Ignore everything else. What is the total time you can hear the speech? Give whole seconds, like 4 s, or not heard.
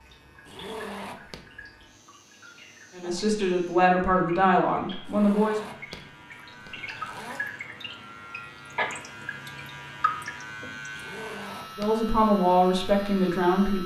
5 s.